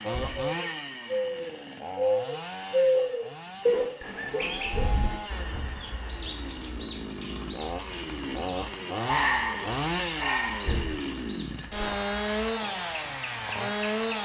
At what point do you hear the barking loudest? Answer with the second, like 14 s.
9 s.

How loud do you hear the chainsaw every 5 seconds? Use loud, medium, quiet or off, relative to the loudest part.
medium, loud, loud.